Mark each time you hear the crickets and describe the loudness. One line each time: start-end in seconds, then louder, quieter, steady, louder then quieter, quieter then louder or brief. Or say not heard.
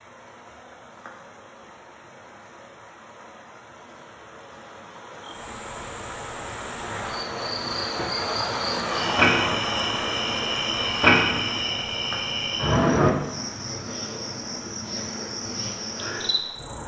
5.2-16.8 louder then quieter.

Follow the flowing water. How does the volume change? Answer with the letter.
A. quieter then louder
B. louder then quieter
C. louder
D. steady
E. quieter
B.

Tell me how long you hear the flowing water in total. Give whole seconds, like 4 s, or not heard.
17 s.